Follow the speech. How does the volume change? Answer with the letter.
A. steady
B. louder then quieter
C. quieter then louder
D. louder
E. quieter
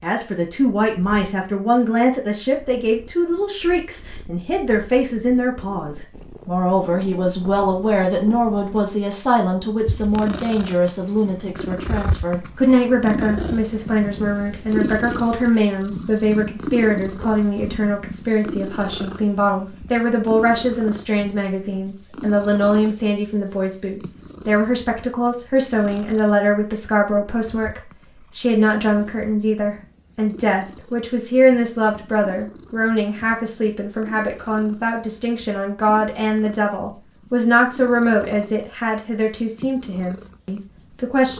A.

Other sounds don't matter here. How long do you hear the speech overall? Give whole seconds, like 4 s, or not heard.
41 s.